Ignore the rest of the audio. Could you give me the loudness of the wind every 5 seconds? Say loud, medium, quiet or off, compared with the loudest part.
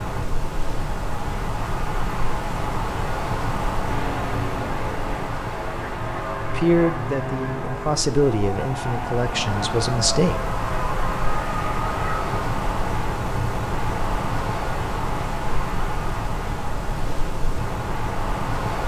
loud, medium, loud, loud.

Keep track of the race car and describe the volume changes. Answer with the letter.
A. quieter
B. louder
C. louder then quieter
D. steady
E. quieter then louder
D.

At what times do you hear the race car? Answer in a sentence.
The race car can be heard from 3.8 to 12.6 s.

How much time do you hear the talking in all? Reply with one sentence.
The talking can be heard for 4 seconds in total.